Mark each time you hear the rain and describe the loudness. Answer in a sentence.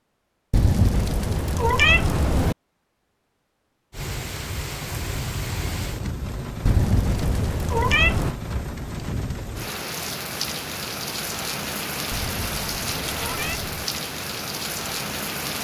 You can hear the rain from 3.9 to 15.5 s, at a steady volume.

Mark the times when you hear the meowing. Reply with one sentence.
The meowing can be heard from 0.5 to 2.5 s, from 6.7 to 8.3 s and from 12.1 to 13.9 s.